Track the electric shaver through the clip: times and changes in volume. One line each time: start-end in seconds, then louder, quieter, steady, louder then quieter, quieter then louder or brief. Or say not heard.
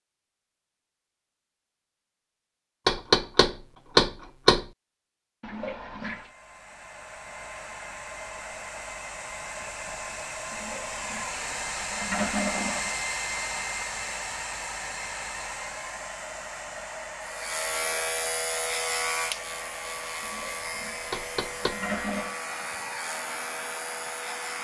17.2-24.5 quieter.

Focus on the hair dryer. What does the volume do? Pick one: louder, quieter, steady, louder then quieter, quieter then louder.
louder then quieter.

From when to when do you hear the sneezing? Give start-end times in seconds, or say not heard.
not heard.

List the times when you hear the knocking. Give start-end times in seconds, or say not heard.
2.9-4.7, 21.1-21.8.